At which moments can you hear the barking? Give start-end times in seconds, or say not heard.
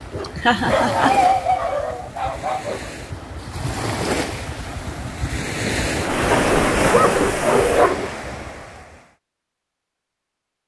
0.1-2.9, 6.3-8.1.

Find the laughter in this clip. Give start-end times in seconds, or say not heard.
0.2-1.1.